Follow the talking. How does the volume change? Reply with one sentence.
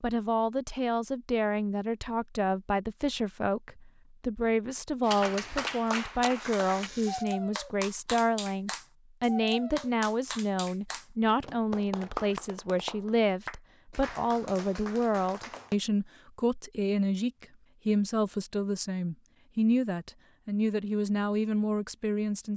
The loudness of the talking stays about the same.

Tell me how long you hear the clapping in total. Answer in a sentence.
The clapping can be heard for 11 seconds in total.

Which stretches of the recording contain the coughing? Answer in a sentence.
The coughing can't be heard in this clip.